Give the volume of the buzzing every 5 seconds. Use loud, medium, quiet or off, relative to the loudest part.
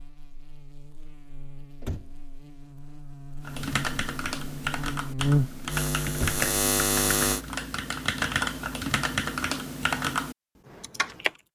quiet, loud, off.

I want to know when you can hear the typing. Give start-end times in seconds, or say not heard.
3.5-11.3.